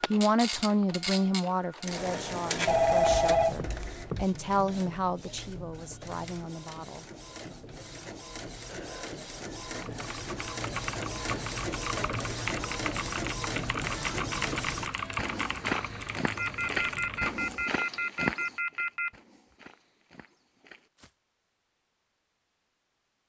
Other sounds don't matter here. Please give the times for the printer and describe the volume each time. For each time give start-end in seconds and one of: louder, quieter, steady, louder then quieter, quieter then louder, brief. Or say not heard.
0.0-14.9 quieter then louder.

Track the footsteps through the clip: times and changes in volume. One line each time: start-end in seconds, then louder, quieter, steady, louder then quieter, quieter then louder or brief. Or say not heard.
15.2-21.1 quieter.